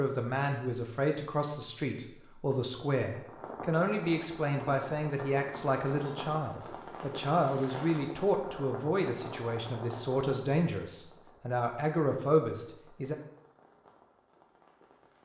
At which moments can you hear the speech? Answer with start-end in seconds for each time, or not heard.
0.0-13.2.